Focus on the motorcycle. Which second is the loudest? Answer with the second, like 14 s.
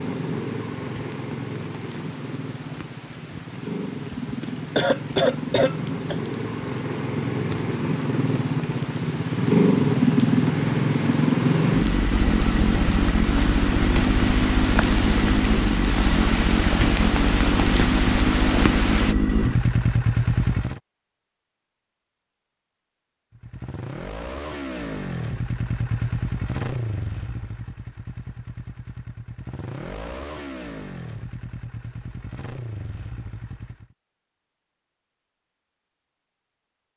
10 s.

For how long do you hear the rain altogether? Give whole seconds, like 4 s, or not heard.
19 s.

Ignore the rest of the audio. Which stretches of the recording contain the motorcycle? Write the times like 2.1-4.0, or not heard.
0.0-20.8, 23.3-34.0.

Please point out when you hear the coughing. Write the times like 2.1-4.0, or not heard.
4.2-6.2.